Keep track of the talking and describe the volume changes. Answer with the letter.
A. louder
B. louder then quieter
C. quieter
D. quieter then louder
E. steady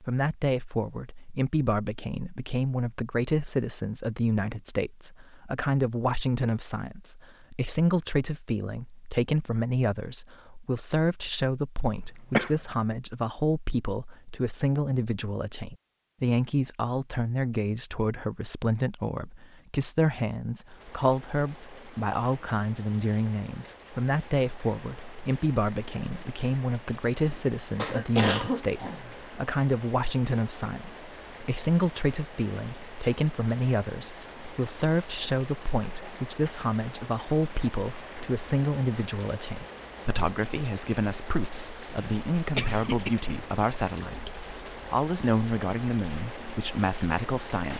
E.